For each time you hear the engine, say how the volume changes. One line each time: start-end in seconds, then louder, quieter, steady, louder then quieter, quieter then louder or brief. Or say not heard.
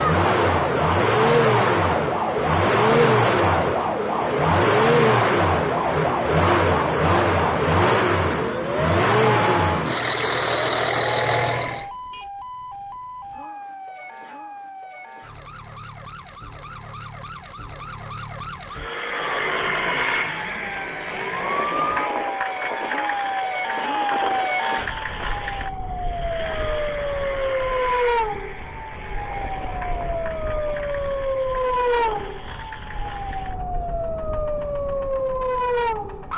0.0-11.8 steady
18.7-36.3 quieter.